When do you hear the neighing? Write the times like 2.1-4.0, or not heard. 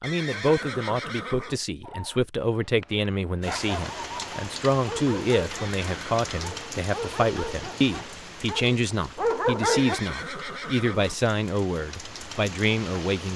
0.0-1.6, 5.5-6.5, 9.6-11.2.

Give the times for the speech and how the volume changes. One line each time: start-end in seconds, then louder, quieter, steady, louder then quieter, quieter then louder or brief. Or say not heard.
0.0-13.3 steady.